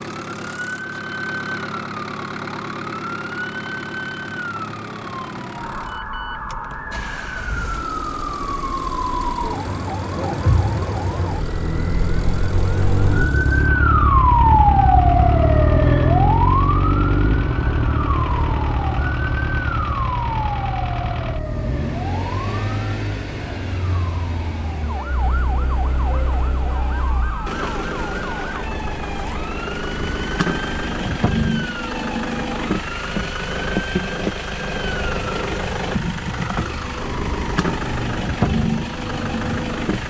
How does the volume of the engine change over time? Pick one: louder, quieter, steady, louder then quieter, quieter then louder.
louder.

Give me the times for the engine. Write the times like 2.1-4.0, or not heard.
0.0-40.0.